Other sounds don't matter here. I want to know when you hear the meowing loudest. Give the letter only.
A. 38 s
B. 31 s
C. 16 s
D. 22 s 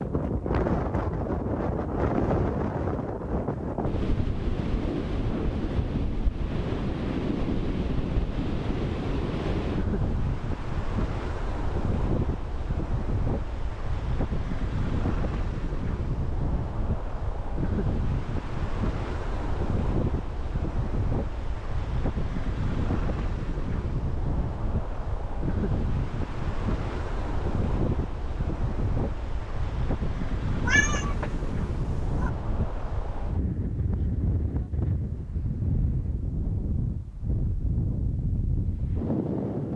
B.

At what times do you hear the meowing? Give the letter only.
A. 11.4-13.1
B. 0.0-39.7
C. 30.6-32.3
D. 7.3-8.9
C.